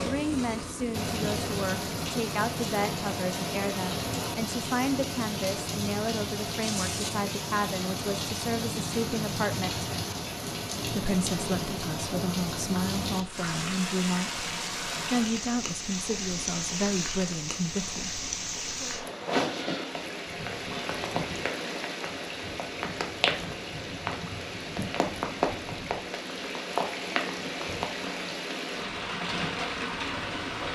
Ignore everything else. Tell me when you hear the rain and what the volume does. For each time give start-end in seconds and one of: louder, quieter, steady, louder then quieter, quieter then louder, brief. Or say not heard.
0.0-30.6 steady.